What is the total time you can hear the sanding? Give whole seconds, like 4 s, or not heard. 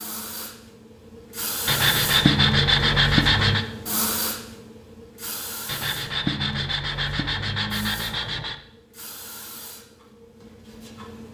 5 s.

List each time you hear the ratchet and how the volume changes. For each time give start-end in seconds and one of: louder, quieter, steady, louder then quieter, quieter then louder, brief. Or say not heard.
not heard.